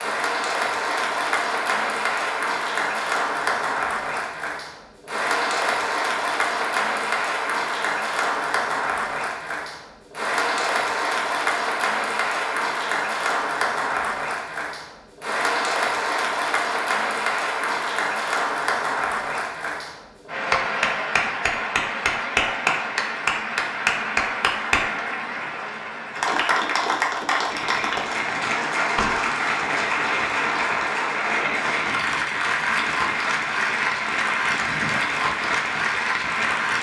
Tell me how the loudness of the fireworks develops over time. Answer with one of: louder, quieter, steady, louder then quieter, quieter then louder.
steady.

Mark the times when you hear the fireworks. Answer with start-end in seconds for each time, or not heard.
27.4-36.7.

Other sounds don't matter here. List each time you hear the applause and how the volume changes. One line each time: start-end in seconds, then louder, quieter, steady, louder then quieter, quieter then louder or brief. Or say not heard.
0.0-36.7 steady.